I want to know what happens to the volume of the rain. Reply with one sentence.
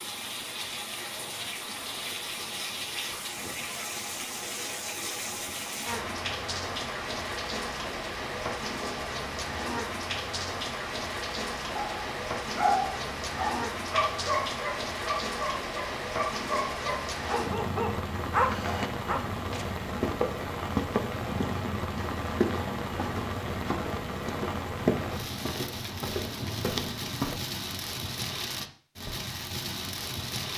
The volume of the rain stays about the same.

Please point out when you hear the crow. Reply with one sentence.
The crow can't be heard in this clip.